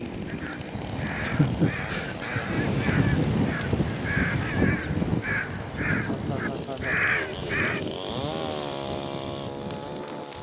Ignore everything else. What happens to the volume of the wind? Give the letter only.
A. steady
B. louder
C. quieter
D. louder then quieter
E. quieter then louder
D.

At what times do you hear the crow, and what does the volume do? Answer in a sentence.
You can hear the crow from 0.2 to 7.8 s, getting louder.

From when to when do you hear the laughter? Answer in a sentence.
The laughter can be heard from 1.2 to 3.2 s and from 6.1 to 7.0 s.